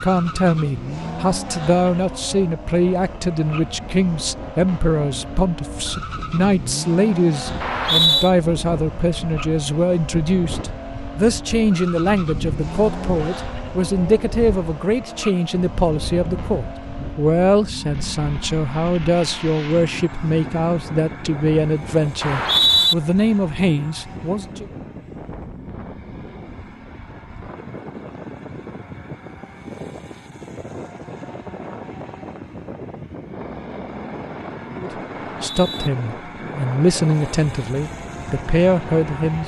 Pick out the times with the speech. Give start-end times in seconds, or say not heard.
0.0-24.6, 34.8-39.4.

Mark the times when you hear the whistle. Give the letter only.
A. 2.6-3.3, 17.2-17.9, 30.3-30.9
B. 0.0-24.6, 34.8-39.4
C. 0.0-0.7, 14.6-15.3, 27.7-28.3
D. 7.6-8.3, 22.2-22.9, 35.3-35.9
D.